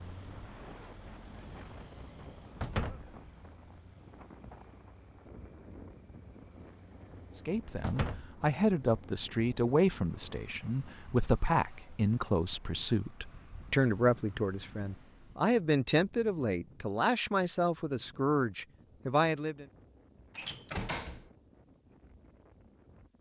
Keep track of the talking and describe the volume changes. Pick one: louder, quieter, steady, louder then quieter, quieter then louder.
steady.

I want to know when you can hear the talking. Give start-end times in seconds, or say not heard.
7.3-19.6.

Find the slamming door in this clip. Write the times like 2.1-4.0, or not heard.
2.6-3.0, 7.8-8.3, 20.4-21.2.